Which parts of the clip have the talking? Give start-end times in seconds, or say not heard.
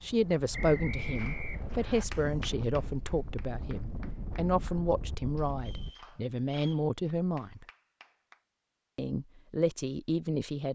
0.0-7.7, 8.9-10.7.